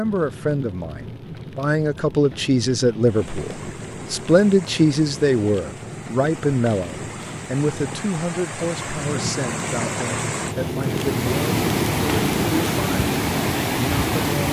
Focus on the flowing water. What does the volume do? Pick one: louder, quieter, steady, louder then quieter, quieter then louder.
louder.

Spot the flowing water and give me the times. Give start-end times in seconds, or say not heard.
3.0-14.4.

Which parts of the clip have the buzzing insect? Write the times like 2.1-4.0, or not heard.
not heard.